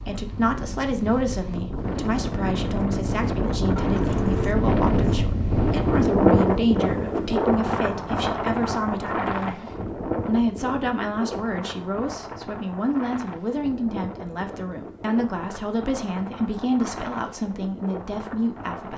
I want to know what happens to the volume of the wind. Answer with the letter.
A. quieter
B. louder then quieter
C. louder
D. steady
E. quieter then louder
B.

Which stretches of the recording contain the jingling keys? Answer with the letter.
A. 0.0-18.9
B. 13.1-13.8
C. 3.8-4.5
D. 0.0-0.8
C.